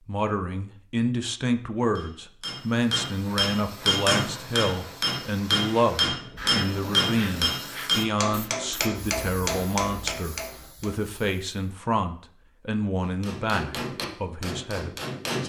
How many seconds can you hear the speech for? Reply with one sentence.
You can hear the speech for 15 seconds altogether.